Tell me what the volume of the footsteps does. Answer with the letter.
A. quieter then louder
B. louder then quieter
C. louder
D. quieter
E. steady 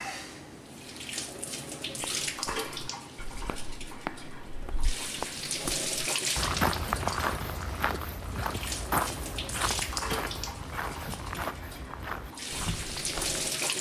B.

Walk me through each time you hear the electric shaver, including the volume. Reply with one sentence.
The electric shaver can't be heard in this clip.